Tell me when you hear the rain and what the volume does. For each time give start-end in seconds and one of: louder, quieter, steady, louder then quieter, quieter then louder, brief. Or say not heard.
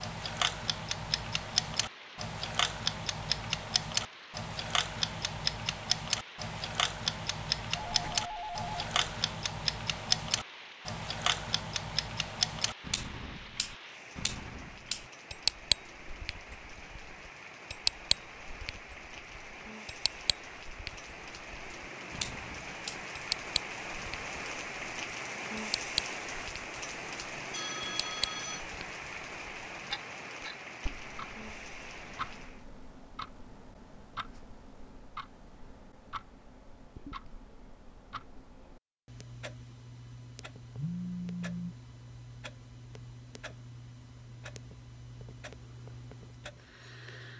0.0-32.6 louder.